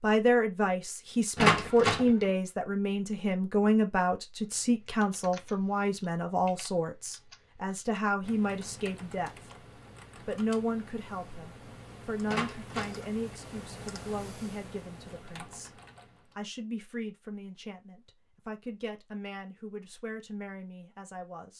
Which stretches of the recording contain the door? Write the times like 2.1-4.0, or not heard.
1.4-2.0, 12.2-12.9.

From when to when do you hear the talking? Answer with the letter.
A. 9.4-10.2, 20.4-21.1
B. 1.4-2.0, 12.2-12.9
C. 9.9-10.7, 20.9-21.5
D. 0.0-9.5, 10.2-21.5
D.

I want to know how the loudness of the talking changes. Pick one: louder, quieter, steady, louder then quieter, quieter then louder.
quieter.